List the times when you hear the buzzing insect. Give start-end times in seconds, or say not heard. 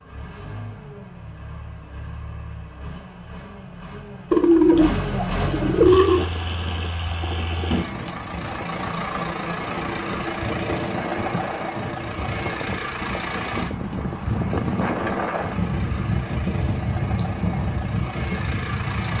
not heard.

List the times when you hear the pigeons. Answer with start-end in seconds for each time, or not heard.
4.3-6.2, 14.3-16.2.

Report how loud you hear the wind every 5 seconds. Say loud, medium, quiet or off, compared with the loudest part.
off, medium, loud, loud.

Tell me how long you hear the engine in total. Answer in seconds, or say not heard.
19 s.